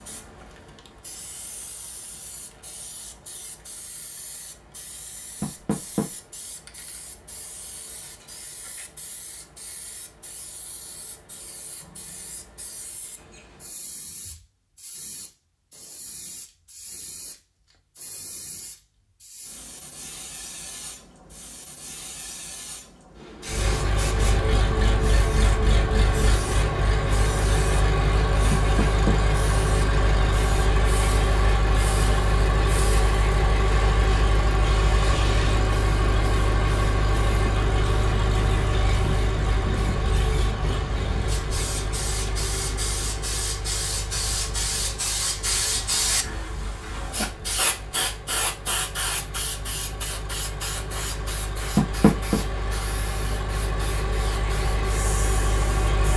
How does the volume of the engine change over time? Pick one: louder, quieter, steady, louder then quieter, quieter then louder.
quieter then louder.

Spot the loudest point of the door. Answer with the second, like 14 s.
52 s.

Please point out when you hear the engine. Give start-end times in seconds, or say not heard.
23.4-56.1.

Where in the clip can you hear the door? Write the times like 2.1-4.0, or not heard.
5.4-6.0, 28.5-29.1, 51.8-52.4.